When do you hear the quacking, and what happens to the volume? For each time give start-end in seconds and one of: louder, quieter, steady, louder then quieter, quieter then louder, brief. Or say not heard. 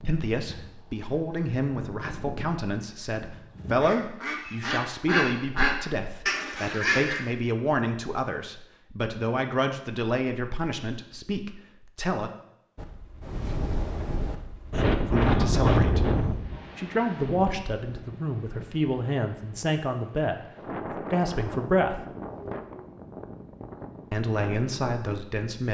0.0-7.2 louder.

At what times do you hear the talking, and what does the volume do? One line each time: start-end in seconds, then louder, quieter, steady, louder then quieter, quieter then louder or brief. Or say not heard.
0.0-12.3 steady
15.1-16.1 brief
16.8-22.0 steady
24.1-25.6 brief.